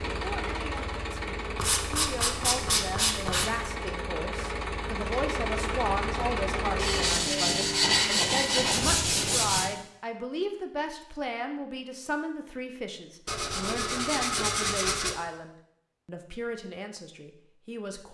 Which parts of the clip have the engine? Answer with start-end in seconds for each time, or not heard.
0.0-7.3.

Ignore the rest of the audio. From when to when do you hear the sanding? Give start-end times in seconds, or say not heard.
1.6-3.5, 6.8-9.8, 13.2-15.2.